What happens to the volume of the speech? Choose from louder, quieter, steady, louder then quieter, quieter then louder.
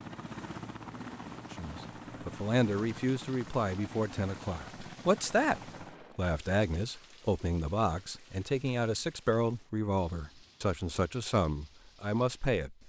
steady.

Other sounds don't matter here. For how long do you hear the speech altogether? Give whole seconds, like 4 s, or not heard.
11 s.